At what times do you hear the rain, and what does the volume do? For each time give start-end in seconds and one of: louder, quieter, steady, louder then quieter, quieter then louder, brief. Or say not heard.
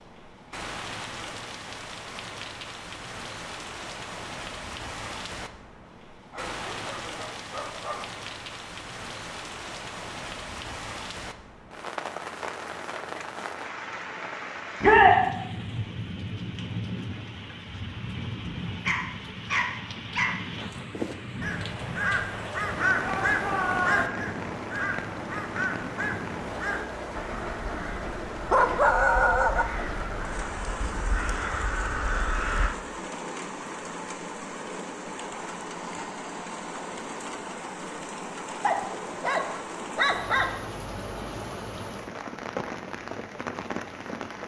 0.0-44.4 steady.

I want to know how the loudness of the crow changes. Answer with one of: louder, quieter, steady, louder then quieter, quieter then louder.
quieter then louder.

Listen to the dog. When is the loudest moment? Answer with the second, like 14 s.
29 s.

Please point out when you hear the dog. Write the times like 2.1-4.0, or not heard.
6.3-8.1, 18.9-20.4, 27.7-29.6, 38.6-40.6.